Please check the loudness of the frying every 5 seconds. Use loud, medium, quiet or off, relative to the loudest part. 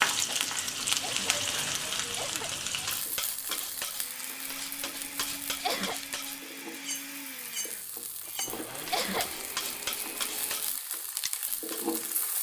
loud, quiet, medium.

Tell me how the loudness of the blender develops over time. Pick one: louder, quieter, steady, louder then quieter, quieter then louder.
steady.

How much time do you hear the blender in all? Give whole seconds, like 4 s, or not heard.
7 s.